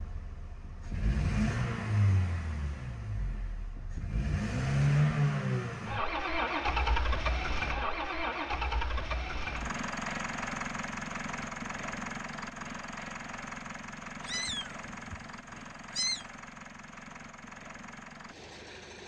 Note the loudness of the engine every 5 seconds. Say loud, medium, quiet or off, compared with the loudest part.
loud, loud, medium, quiet.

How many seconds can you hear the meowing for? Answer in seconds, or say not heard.
2 s.